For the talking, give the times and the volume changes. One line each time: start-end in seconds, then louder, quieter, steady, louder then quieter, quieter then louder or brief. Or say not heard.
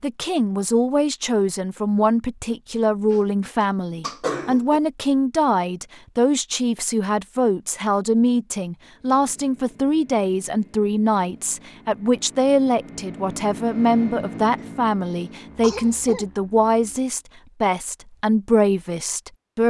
0.0-19.6 steady.